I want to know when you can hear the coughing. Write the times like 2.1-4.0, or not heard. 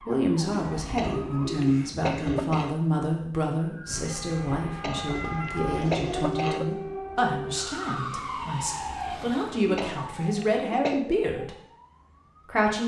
0.9-2.8, 4.8-6.7, 9.8-11.1.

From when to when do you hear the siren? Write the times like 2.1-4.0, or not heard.
0.0-1.7, 3.6-12.7.